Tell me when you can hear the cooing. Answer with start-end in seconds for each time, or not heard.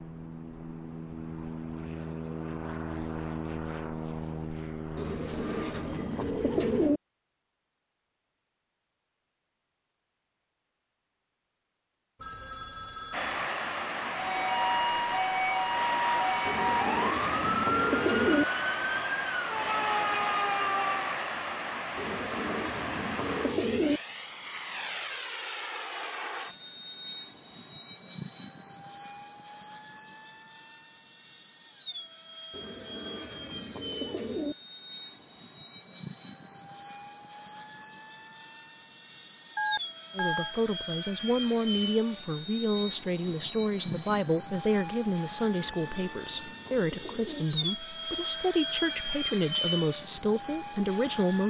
5.0-7.0, 16.4-18.4, 21.9-24.0, 32.5-34.5, 45.5-47.5.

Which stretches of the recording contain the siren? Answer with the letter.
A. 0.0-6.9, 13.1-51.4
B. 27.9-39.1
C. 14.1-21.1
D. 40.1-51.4
C.